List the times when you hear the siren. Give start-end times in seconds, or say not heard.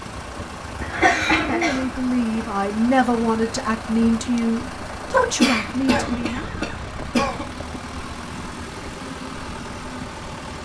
not heard.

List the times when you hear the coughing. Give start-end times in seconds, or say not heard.
0.8-1.9, 5.4-7.5.